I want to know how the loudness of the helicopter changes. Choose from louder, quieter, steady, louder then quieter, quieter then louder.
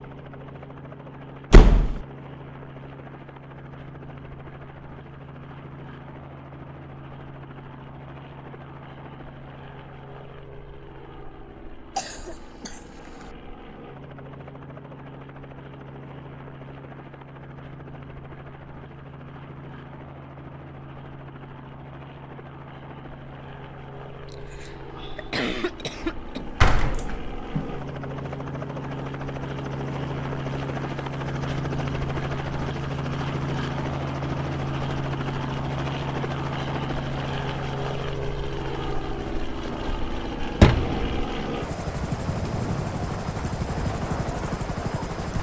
louder.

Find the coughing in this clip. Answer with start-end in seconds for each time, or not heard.
11.9-13.3, 24.3-26.4.